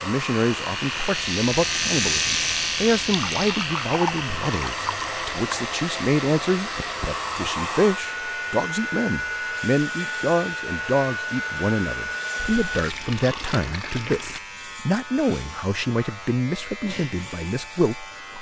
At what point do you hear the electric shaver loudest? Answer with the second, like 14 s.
2 s.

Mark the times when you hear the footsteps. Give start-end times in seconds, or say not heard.
not heard.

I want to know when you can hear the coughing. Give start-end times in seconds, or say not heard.
not heard.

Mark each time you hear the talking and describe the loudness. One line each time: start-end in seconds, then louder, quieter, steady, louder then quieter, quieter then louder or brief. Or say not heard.
0.0-18.3 steady.